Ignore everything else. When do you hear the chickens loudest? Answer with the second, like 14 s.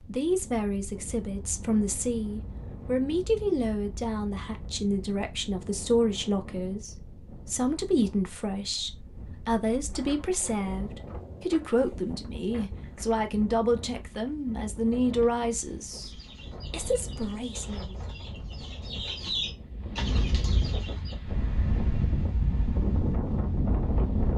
19 s.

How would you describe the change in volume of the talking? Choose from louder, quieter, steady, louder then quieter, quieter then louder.
steady.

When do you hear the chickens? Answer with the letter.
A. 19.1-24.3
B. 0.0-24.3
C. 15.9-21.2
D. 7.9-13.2
C.